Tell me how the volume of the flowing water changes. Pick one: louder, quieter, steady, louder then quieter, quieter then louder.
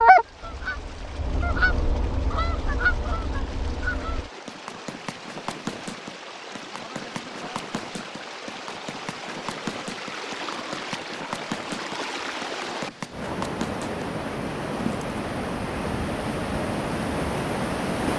louder.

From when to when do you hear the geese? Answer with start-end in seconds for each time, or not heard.
0.0-4.3.